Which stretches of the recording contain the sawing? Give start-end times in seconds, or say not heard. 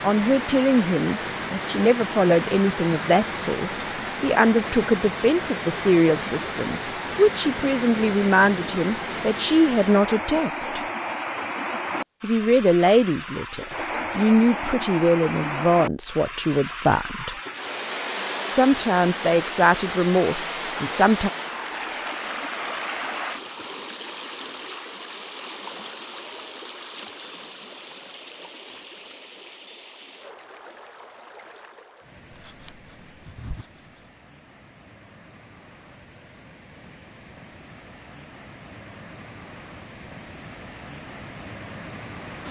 32.3-34.0.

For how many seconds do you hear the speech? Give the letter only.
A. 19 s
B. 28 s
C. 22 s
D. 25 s
A.